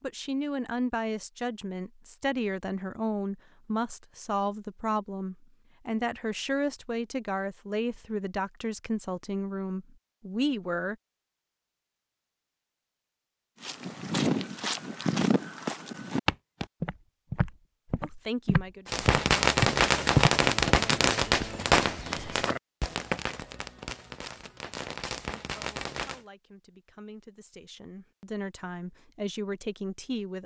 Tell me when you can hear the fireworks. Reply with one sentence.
The fireworks can be heard from 18.9 to 26.2 s.